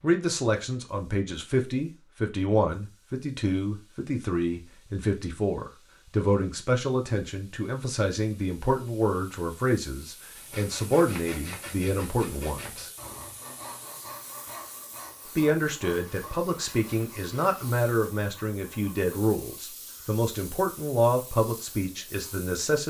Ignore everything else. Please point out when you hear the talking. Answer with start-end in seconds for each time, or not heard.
0.0-12.9, 15.3-22.8.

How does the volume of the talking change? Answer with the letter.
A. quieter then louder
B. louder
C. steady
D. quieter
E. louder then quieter
C.